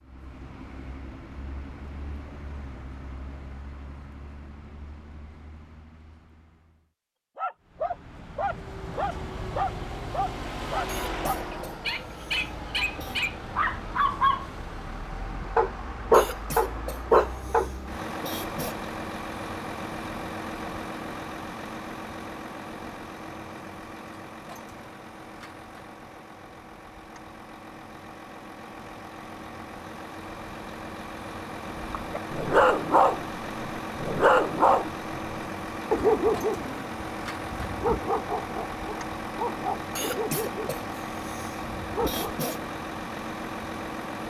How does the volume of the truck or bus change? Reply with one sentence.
The volume of the truck or bus goes up.